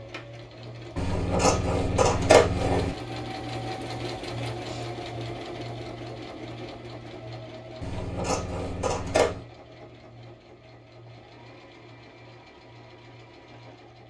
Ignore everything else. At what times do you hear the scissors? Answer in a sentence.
The scissors can be heard from 0.9 to 3.0 s and from 7.8 to 9.4 s.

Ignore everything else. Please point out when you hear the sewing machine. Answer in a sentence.
The sewing machine can be heard from 0.0 to 14.0 s.